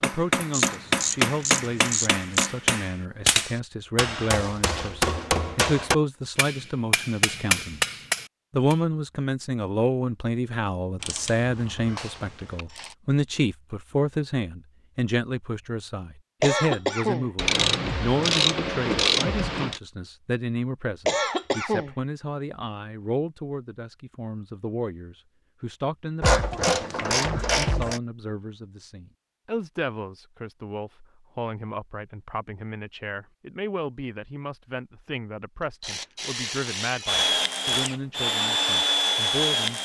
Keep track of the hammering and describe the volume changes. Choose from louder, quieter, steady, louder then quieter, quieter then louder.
steady.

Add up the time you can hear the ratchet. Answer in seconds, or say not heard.
10 s.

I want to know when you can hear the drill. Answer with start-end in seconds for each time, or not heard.
37.0-39.8.